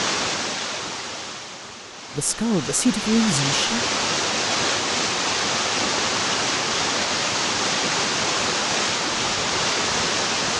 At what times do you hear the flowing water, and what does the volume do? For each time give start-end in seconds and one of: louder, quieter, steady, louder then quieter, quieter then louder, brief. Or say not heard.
0.0-10.5 louder.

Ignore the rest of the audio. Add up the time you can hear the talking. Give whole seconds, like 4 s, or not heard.
2 s.